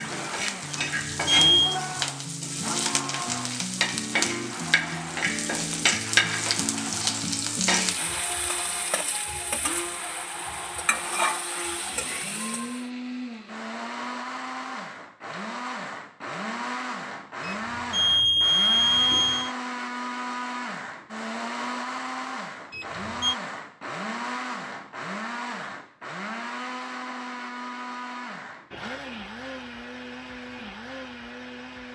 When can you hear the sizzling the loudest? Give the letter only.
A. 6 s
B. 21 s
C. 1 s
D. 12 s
A.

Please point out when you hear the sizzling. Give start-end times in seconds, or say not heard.
0.0-12.8.